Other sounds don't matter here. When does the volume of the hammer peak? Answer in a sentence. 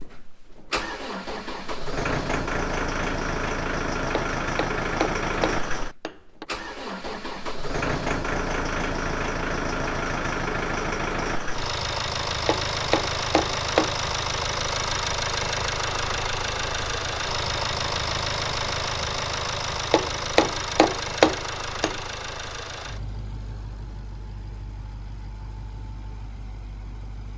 The volume of the hammer peaks at 21 seconds.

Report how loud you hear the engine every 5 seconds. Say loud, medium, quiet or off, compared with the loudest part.
loud, loud, loud, loud, medium, quiet.